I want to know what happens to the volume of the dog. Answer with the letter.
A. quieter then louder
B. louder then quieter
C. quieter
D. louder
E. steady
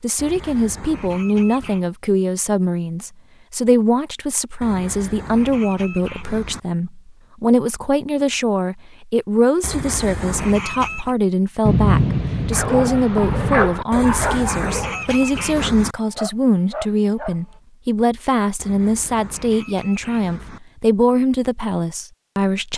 A.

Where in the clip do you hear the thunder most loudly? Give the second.
12 s.